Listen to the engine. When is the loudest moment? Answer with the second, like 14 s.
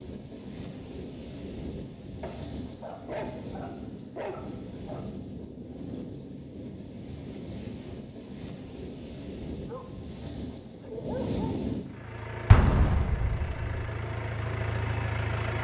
15 s.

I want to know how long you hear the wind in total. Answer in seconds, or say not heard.
12 s.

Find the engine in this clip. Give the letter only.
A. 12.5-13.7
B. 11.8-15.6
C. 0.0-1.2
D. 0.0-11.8
B.